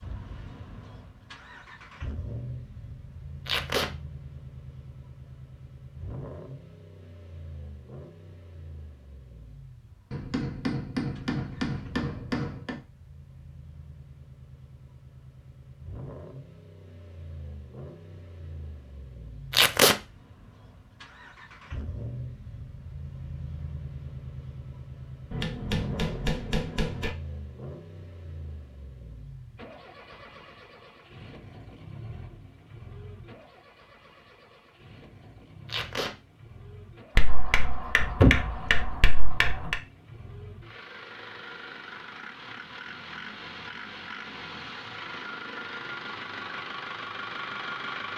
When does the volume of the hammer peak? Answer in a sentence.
The loudest moment of the hammer is at 38 seconds.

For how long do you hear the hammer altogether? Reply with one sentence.
You can hear the hammer for 7 seconds altogether.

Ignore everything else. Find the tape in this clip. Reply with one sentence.
The tape can be heard from 3.5 to 3.9 s, from 19.5 to 19.9 s and from 35.6 to 36.1 s.